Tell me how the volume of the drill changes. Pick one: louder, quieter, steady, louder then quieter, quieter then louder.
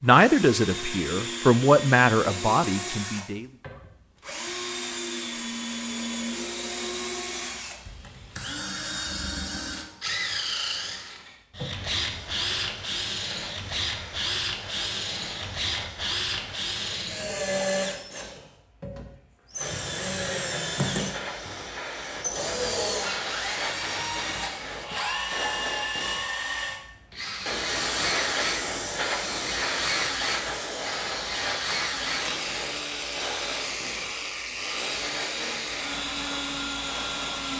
steady.